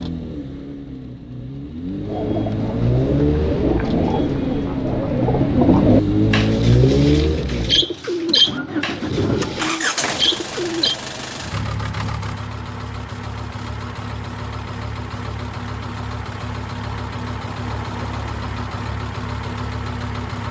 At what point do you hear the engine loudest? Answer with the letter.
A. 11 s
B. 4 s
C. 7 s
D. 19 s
C.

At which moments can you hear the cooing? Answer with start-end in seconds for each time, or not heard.
2.0-10.9.